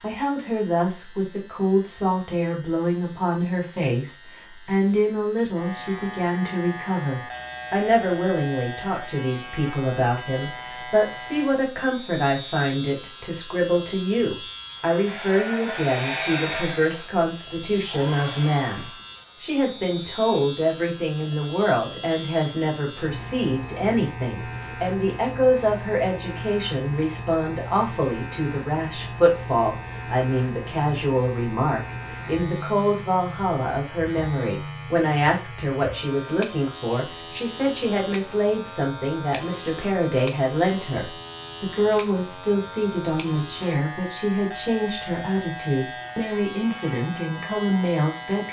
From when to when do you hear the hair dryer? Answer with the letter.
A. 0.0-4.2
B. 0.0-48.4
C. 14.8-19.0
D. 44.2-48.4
C.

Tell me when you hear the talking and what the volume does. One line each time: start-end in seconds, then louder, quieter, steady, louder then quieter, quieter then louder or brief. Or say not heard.
0.0-48.4 steady.